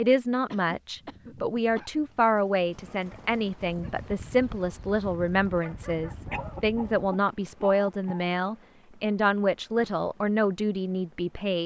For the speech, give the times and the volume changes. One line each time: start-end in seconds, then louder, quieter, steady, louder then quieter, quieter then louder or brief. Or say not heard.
0.0-11.6 steady.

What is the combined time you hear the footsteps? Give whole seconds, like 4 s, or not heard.
not heard.